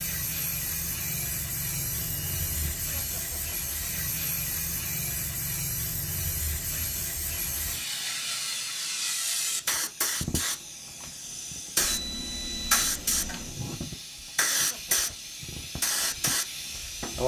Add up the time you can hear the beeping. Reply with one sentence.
The beeping can be heard for 3 seconds in total.